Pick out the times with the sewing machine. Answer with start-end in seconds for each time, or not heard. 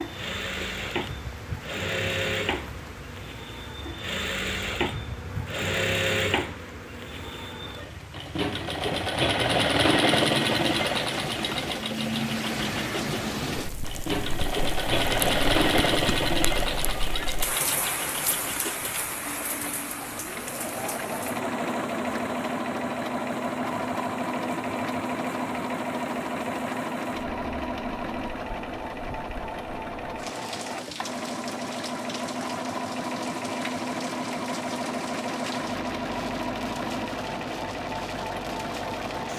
0.0-39.3.